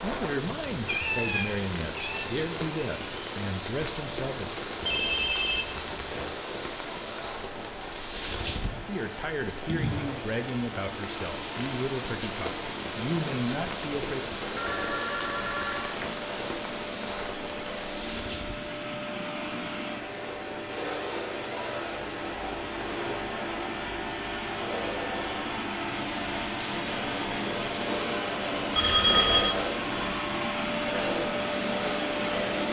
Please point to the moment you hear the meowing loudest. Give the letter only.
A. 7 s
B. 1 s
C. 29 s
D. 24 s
B.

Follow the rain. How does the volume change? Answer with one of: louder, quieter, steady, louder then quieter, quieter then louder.
steady.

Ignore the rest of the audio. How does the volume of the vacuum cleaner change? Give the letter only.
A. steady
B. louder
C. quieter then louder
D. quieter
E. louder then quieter
B.